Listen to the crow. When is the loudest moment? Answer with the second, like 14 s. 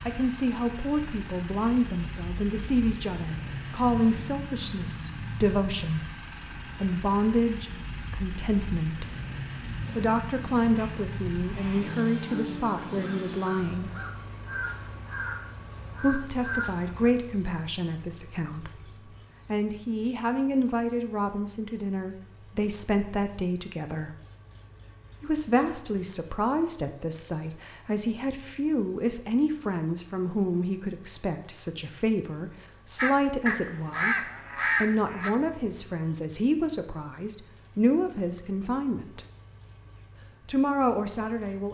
35 s.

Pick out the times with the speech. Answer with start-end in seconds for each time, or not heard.
0.1-9.2, 9.9-13.9, 16.0-24.1, 25.2-39.2, 40.5-41.6.